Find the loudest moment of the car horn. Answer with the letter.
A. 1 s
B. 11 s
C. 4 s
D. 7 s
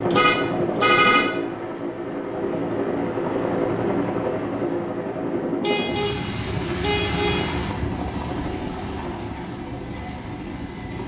A.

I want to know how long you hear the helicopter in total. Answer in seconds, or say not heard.
11 s.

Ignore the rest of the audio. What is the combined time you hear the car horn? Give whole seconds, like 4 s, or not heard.
3 s.